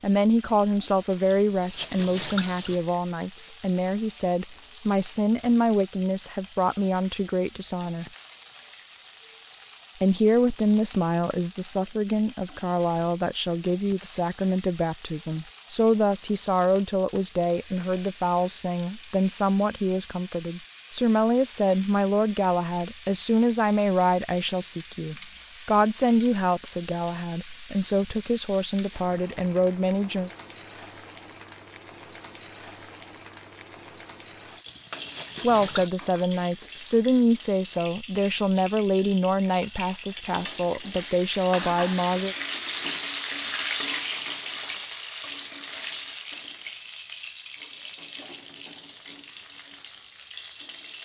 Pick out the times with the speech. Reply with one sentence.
The speech can be heard from 0.0 to 8.1 s, from 10.0 to 30.3 s and from 35.4 to 42.4 s.